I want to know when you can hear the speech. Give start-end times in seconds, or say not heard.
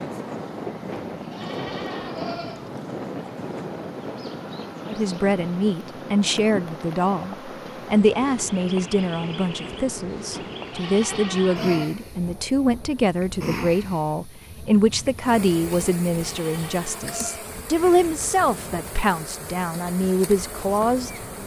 4.8-21.4.